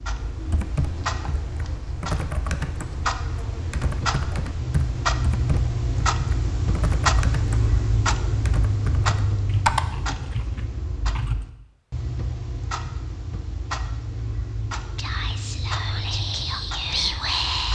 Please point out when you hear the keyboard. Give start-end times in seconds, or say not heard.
0.2-11.4.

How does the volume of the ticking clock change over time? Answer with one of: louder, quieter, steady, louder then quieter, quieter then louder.
louder then quieter.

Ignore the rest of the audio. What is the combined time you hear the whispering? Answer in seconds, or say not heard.
3 s.